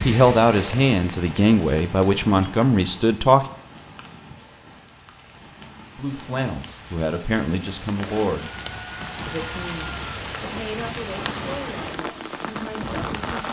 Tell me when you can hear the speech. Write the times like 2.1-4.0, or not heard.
0.1-3.5, 6.0-8.5, 9.2-13.4.